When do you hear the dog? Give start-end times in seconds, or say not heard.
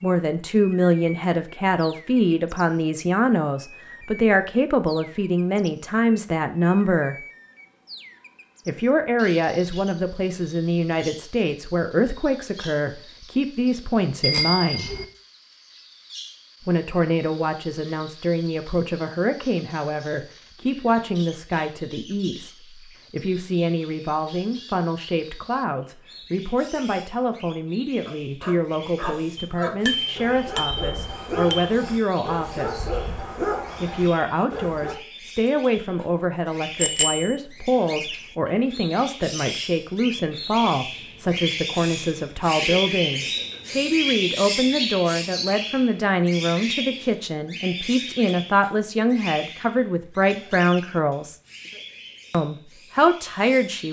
28.1-35.0.